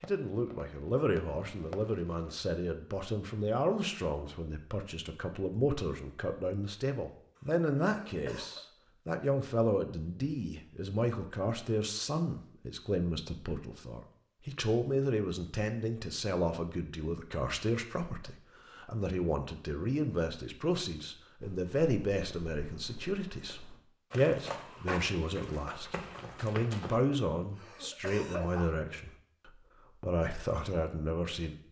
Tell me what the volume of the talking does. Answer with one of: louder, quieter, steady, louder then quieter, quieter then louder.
steady.